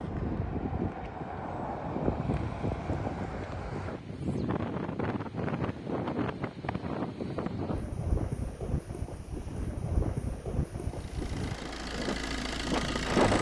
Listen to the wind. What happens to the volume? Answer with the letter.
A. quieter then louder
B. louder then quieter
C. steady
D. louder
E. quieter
C.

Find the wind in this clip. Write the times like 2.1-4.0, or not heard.
0.0-13.3.